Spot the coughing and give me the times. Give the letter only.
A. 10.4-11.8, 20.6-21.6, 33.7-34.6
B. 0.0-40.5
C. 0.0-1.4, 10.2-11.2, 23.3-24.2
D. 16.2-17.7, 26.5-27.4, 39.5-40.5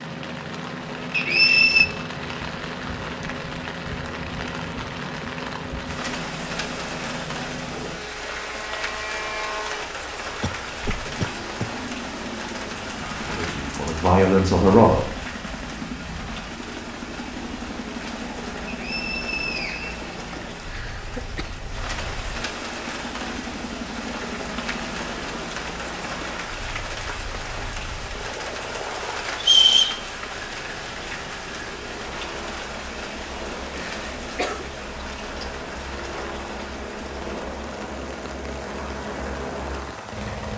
A.